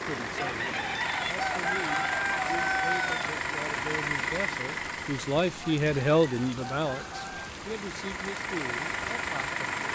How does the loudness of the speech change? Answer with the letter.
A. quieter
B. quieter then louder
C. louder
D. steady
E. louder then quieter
E.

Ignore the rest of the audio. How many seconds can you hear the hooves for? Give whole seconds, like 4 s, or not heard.
not heard.